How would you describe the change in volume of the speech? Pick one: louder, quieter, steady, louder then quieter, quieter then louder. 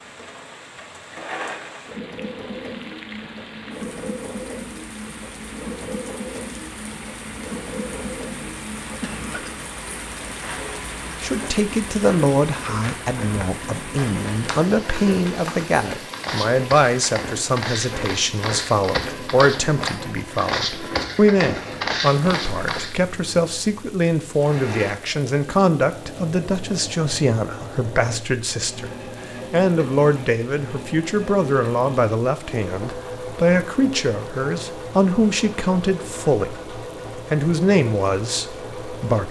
steady.